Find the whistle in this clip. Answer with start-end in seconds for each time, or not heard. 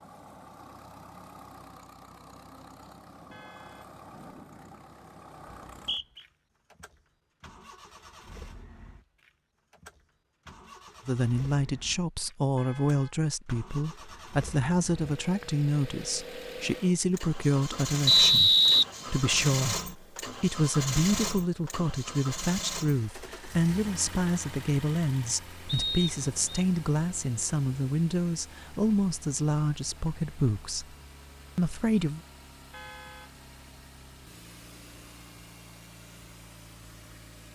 5.7-6.2, 18.1-19.4, 25.6-26.6.